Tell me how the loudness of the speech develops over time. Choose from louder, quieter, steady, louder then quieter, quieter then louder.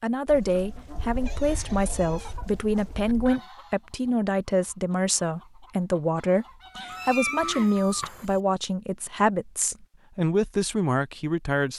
steady.